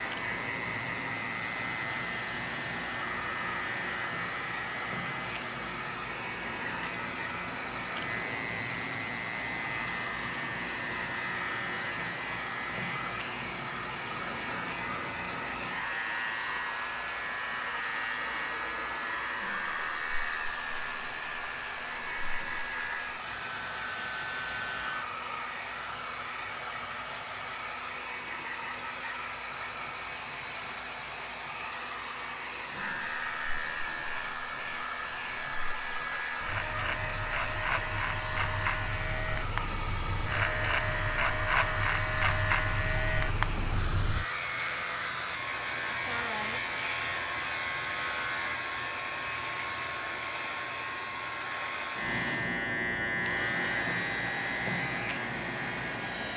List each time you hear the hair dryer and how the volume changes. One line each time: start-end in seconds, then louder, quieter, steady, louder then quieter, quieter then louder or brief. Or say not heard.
0.0-56.3 steady.